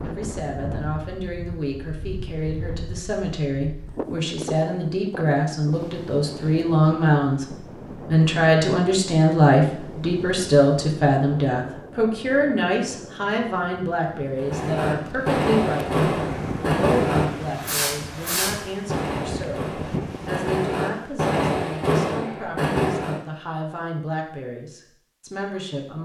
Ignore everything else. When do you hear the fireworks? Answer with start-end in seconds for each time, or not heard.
14.3-23.2.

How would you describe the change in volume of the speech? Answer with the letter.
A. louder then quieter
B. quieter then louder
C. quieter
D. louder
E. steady
A.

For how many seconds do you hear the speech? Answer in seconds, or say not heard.
26 s.